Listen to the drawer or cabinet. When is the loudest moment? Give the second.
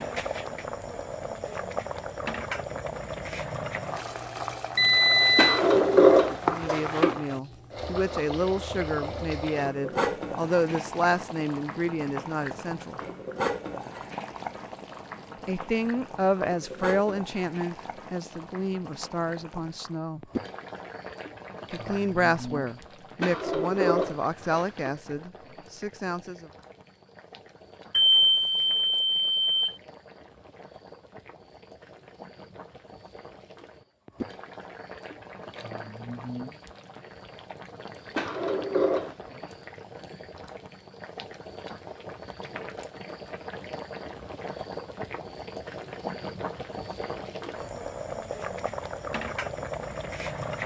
6 s.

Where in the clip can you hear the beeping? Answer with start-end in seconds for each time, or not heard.
4.8-5.6, 27.9-29.8.